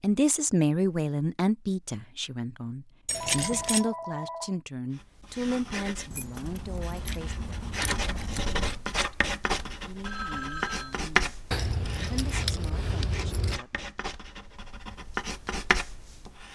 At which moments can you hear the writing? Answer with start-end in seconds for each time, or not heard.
5.0-16.5.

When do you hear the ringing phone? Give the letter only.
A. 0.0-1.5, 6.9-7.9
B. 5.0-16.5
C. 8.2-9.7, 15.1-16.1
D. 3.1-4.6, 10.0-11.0
D.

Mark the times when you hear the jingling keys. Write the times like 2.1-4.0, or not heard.
3.0-3.9, 6.1-8.8, 11.5-13.6.